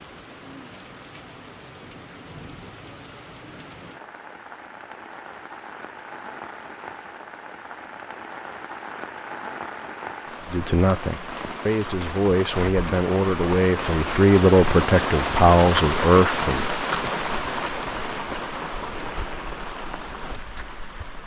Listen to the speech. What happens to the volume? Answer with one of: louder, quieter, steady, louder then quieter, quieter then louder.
louder.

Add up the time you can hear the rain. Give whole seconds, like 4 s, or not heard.
21 s.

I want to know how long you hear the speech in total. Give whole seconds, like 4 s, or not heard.
6 s.